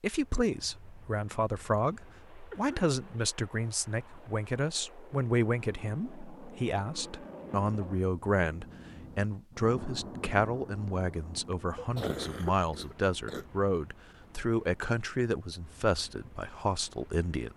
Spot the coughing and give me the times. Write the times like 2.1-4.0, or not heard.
2.5-3.0, 10.8-13.4.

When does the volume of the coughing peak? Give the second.
12 s.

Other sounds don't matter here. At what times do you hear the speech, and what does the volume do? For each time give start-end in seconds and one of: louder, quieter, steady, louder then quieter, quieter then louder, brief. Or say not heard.
0.0-17.5 steady.